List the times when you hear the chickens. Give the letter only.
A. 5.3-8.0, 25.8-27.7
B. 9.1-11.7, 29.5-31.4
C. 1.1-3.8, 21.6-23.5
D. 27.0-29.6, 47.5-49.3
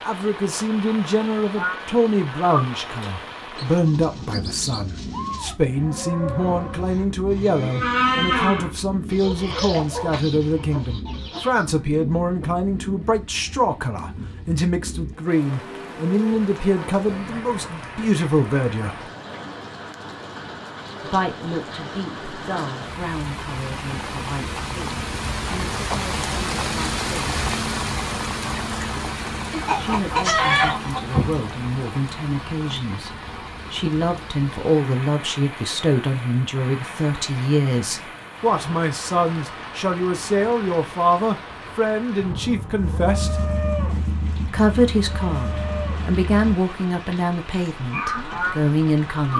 B.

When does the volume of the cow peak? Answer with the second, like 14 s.
8 s.